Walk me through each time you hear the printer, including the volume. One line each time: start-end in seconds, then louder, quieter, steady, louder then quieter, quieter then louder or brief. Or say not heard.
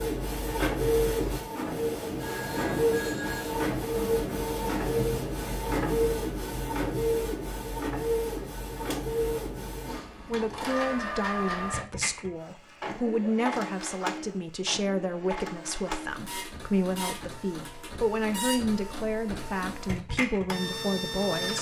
0.0-21.5 quieter.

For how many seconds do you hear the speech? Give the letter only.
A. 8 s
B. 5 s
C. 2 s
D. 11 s
D.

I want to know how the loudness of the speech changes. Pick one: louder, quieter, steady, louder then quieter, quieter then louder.
steady.